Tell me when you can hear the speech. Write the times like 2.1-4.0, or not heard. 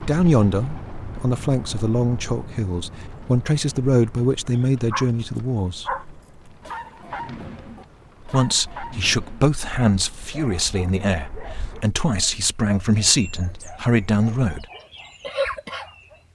0.0-5.9, 8.2-14.7.